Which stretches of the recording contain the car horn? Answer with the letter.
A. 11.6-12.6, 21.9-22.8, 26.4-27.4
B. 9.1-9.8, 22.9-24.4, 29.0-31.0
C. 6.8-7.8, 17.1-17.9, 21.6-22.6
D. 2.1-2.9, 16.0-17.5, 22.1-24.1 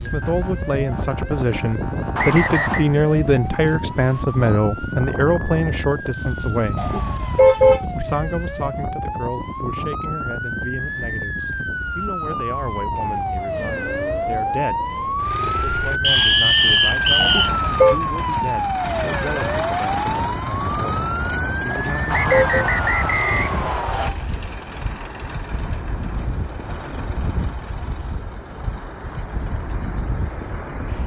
C.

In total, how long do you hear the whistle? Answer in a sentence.
You can hear the whistle for 4 seconds altogether.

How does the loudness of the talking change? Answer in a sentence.
The loudness of the talking goes down.